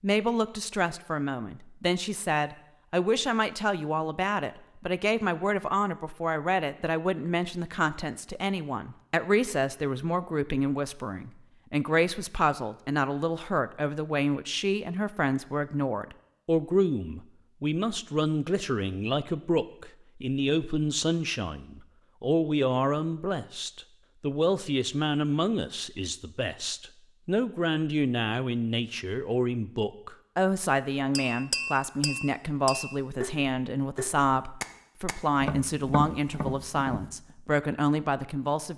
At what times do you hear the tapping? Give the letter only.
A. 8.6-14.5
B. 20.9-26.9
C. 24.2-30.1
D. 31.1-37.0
D.